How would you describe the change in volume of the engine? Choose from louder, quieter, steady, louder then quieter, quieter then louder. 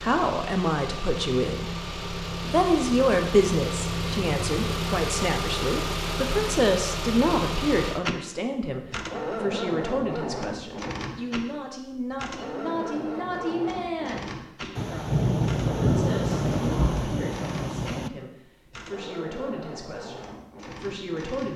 quieter.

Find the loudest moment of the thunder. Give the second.
16 s.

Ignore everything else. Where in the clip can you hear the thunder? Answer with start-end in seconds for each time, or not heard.
14.8-18.1.